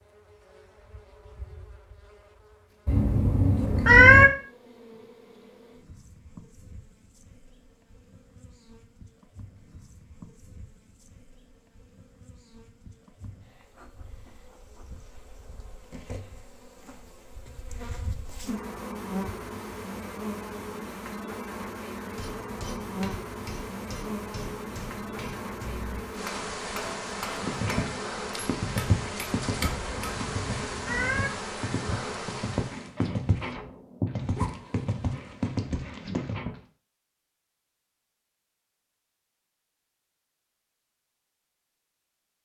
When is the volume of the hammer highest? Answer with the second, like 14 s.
30 s.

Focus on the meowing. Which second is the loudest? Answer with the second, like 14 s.
4 s.